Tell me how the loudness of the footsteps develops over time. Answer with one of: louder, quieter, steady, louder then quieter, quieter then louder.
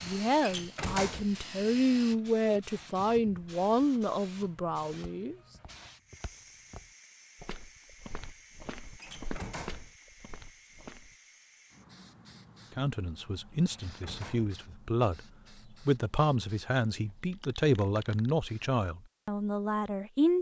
louder then quieter.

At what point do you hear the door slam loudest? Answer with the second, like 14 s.
1 s.